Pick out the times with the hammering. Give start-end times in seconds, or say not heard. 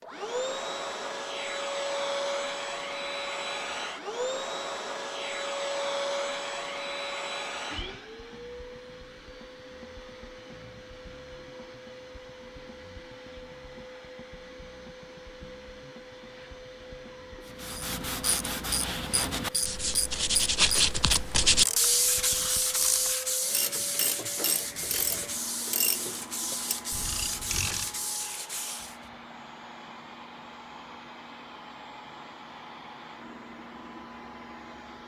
not heard.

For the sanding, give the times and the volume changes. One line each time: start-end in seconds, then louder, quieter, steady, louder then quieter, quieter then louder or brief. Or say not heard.
17.4-28.9 louder then quieter.